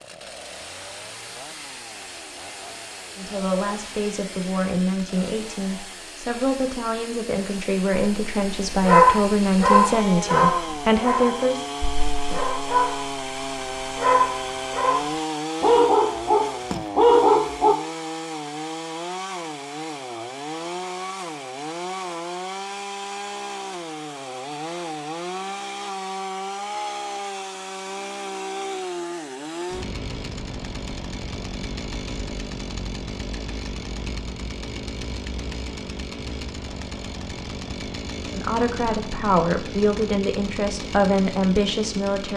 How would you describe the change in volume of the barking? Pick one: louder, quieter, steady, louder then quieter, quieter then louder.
quieter then louder.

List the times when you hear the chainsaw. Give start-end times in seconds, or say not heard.
0.0-42.3.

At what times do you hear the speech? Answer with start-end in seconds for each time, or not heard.
3.1-11.6, 38.3-42.3.